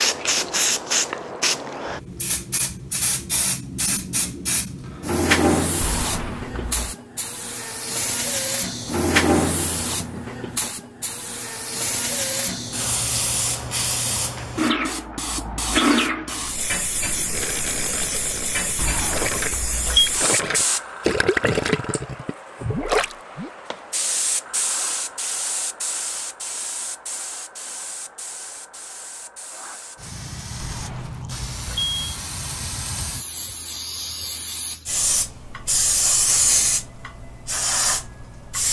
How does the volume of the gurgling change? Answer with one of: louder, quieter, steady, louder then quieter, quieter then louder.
louder.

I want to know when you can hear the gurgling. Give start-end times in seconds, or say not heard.
17.2-23.5.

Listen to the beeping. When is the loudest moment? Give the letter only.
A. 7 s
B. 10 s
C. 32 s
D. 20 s
D.